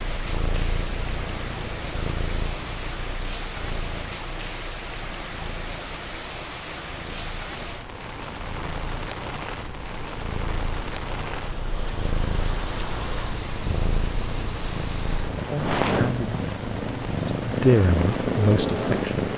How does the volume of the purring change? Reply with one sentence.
The volume of the purring goes down, then up.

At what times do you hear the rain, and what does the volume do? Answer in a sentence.
You can hear the rain from 0.0 to 19.3 s, at a steady volume.